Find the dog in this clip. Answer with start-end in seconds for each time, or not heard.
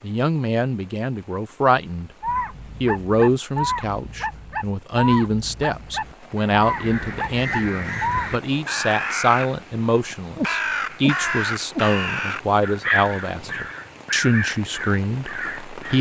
2.2-8.4.